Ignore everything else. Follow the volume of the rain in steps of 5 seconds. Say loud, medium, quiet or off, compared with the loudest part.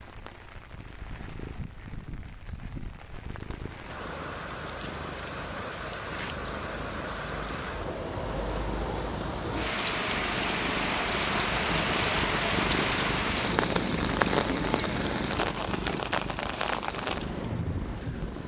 quiet, medium, loud, medium.